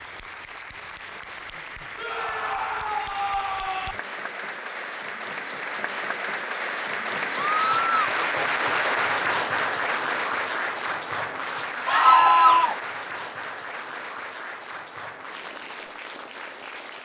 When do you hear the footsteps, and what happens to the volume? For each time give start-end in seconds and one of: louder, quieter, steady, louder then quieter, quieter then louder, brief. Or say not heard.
not heard.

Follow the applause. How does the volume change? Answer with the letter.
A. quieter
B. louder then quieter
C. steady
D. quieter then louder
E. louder
B.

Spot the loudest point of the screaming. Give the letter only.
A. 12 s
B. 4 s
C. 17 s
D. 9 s
A.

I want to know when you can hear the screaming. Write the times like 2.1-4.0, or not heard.
1.9-4.0, 7.5-8.1, 11.8-12.8.